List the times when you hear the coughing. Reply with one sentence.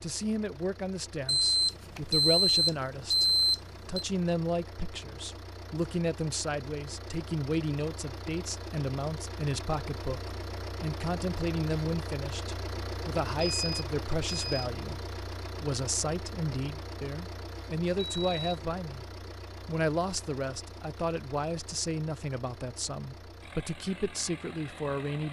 The coughing can't be heard in this clip.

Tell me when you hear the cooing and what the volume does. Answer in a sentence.
You can't hear the cooing here.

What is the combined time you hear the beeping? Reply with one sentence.
You can hear the beeping for 5 seconds altogether.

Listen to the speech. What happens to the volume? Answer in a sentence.
The volume of the speech stays about the same.